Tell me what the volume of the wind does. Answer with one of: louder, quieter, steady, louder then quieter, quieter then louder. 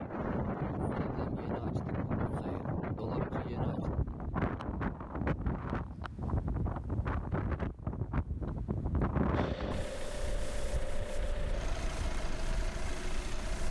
quieter.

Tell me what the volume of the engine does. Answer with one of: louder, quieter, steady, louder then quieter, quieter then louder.
steady.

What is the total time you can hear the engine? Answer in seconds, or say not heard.
4 s.